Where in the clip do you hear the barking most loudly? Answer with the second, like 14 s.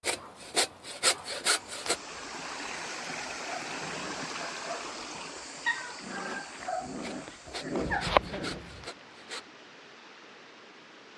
8 s.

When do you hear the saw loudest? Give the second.
1 s.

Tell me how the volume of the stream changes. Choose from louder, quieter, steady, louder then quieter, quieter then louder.
quieter.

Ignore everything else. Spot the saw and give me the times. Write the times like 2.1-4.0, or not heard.
0.0-2.0, 7.0-9.4.